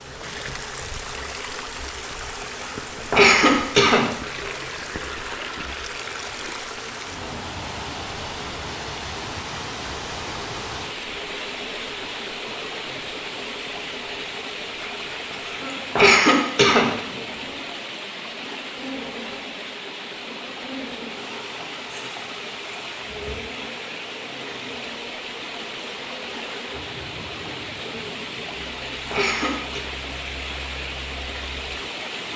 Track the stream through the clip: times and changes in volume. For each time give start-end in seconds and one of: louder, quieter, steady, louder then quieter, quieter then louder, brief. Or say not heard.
0.0-32.3 steady.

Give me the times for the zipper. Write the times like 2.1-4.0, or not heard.
not heard.